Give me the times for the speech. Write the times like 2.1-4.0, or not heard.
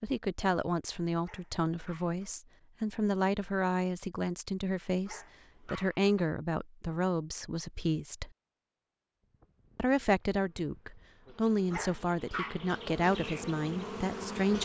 0.0-8.3, 9.8-14.6.